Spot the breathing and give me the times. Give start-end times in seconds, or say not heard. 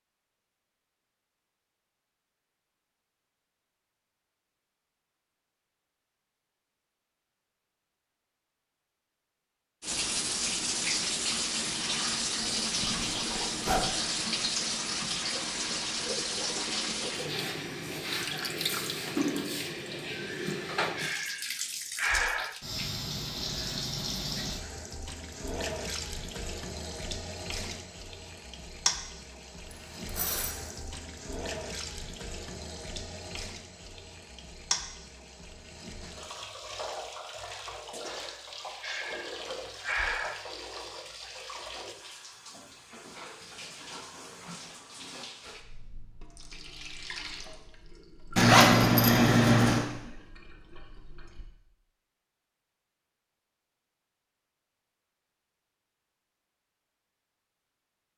20.9-22.6, 38.8-40.5.